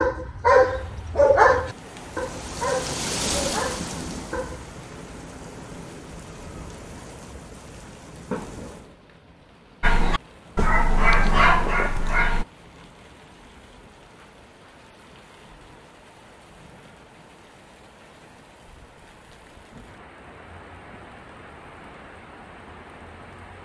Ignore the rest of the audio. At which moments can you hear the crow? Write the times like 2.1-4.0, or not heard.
not heard.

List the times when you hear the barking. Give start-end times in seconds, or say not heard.
0.0-4.7, 9.8-12.4.